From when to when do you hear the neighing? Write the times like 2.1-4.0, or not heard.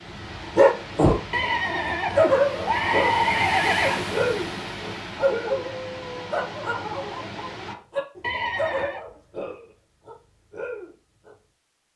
1.3-4.0, 8.2-9.1.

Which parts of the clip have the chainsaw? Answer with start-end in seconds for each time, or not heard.
not heard.